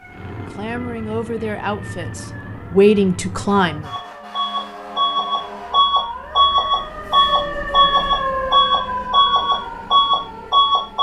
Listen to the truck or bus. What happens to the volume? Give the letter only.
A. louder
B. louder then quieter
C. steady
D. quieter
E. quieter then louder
A.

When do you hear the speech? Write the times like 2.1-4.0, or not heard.
0.5-3.9.